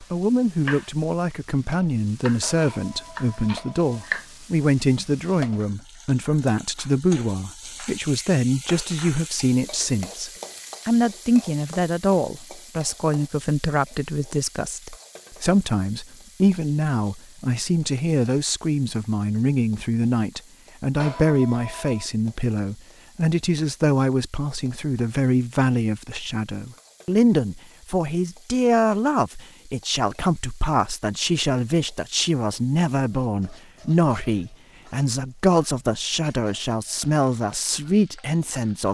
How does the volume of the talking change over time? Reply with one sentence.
The loudness of the talking stays about the same.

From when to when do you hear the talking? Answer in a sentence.
The talking can be heard from 0.0 to 38.9 s.